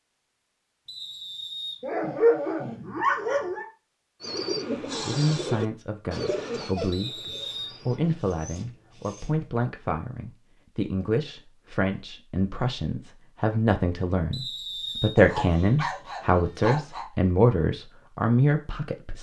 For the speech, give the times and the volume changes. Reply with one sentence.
The speech can be heard from 4.8 to 19.1 s, getting louder.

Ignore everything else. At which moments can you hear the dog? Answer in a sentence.
You can hear the dog from 1.8 to 3.6 s, from 6.6 to 9.4 s and from 15.2 to 17.1 s.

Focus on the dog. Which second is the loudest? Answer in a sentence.
The loudest moment of the dog is at 2 seconds.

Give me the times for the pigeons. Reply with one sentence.
The pigeons can be heard from 4.2 to 8.2 s.